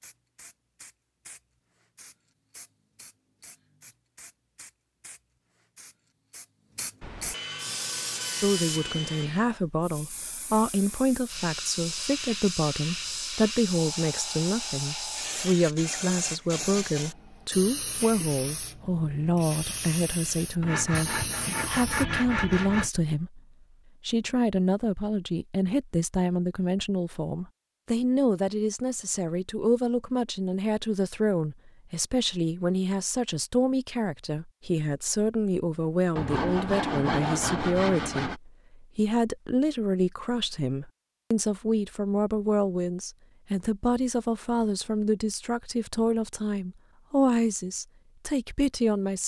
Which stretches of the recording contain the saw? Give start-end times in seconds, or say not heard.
7.0-9.4, 20.6-22.9, 36.1-38.4.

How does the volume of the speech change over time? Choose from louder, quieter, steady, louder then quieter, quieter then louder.
steady.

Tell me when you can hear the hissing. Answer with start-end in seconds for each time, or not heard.
0.0-22.1.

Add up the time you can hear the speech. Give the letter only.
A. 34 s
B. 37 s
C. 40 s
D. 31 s
C.